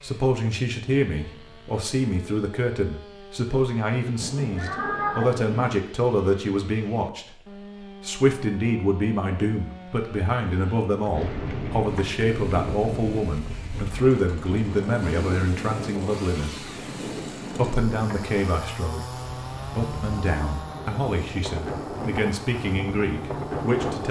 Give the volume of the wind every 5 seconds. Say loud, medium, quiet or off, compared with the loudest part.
off, off, loud, loud, loud.